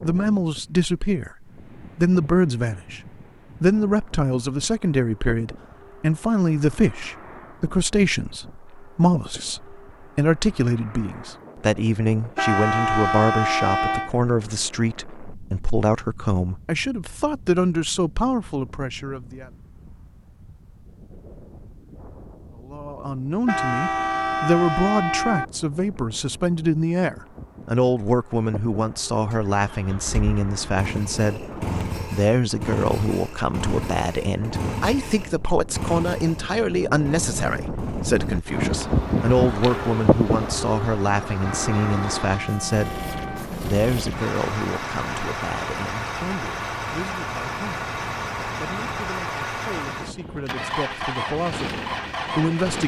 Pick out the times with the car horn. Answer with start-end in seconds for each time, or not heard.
12.3-14.1, 23.4-25.4, 41.4-43.5.